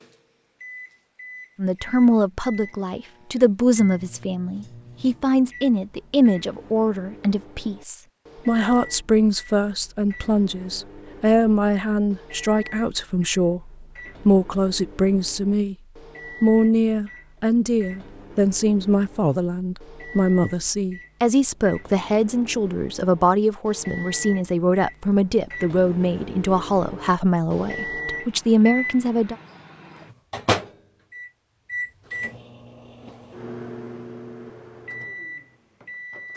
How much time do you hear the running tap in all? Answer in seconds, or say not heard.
not heard.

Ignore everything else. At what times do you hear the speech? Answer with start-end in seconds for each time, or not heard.
1.6-15.8, 16.4-29.4.